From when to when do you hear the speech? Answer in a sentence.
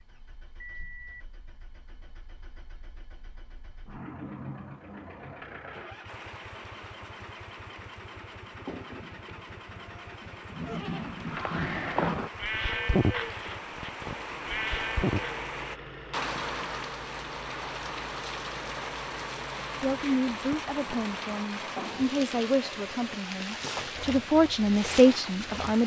The speech can be heard from 19.8 to 25.8 s.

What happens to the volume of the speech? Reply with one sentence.
The loudness of the speech goes up.